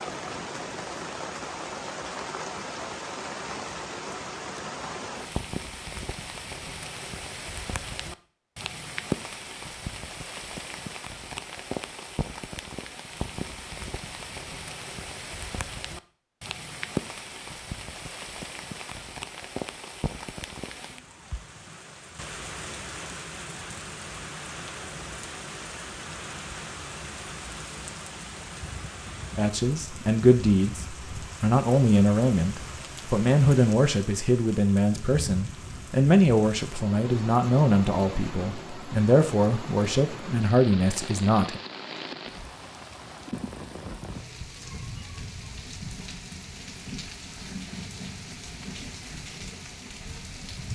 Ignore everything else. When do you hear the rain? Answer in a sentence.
You can hear the rain from 0.0 to 50.7 s.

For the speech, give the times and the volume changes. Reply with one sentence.
You can hear the speech from 29.4 to 41.6 s, at a steady volume.